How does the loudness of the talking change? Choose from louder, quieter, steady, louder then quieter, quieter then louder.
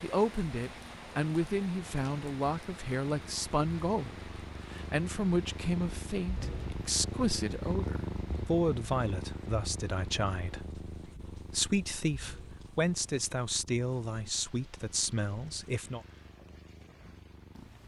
steady.